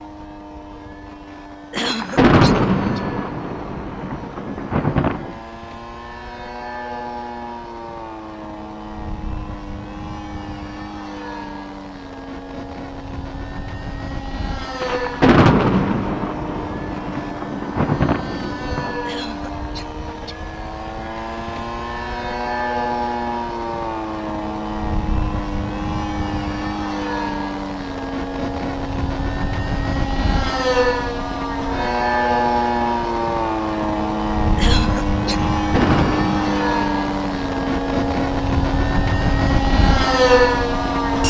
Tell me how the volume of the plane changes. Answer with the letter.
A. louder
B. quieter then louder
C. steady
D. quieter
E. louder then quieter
A.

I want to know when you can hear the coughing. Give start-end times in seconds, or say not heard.
1.7-3.0, 19.0-20.4, 34.5-35.5.